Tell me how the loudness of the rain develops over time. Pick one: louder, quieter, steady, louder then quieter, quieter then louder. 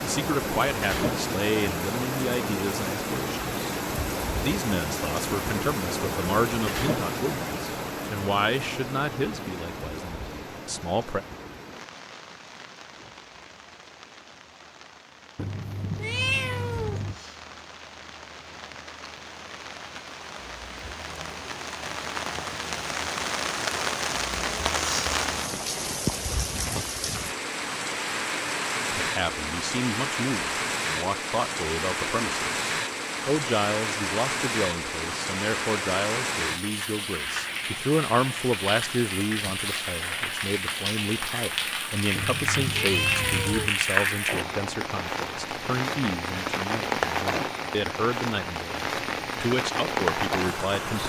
quieter then louder.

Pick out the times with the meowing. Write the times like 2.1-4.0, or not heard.
15.3-17.1, 42.1-43.8.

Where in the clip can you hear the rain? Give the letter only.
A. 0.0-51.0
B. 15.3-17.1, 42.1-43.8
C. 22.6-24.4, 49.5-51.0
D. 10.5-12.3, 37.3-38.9
A.